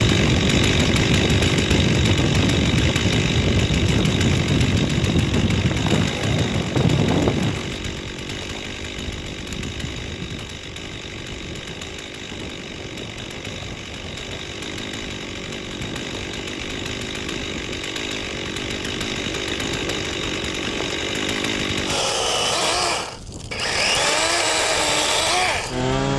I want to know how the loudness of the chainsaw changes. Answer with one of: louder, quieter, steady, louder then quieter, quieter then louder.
quieter then louder.